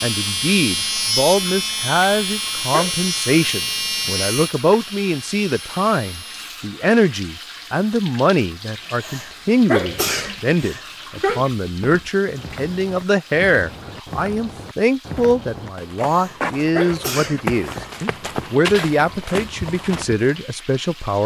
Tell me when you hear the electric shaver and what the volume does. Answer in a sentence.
You can hear the electric shaver from 0.0 to 6.5 s, getting quieter.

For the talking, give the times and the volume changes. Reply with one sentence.
You can hear the talking from 0.0 to 21.2 s, at a steady volume.